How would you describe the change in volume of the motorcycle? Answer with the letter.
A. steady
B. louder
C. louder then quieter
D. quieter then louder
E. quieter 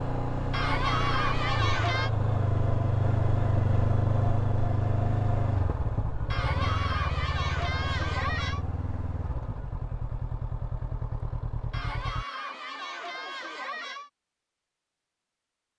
E.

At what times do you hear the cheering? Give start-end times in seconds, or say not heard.
0.5-2.1, 6.3-8.7, 11.7-14.1.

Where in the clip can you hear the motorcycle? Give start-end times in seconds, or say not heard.
0.0-12.2.